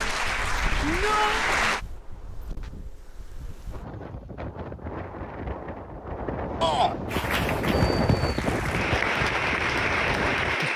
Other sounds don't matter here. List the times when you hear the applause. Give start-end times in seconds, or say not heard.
0.0-1.8, 7.0-10.7.